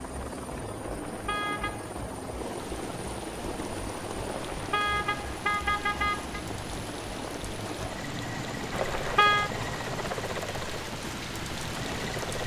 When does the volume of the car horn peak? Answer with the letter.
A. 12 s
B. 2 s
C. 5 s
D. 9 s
D.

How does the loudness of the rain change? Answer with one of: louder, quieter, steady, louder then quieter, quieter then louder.
louder.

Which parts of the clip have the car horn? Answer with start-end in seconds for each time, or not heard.
0.9-1.9, 4.2-6.4, 8.7-9.5.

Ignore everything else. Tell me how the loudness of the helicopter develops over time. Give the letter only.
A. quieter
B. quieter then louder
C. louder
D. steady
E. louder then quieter
D.